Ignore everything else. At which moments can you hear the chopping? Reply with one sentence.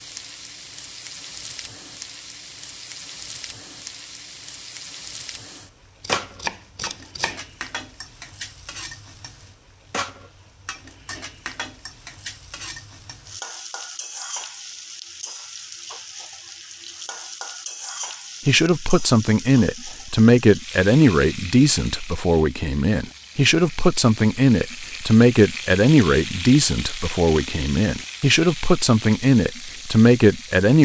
The chopping can be heard from 6.0 to 7.4 s.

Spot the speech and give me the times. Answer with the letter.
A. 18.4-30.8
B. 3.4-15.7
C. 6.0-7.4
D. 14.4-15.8
A.